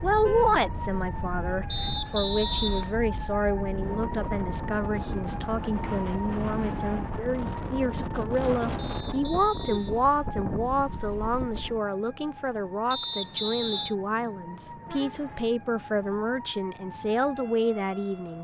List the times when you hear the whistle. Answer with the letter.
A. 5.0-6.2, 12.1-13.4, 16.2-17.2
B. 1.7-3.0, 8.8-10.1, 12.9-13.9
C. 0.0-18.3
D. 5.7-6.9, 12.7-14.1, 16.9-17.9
B.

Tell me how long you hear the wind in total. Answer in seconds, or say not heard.
12 s.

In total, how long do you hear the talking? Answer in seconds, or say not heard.
18 s.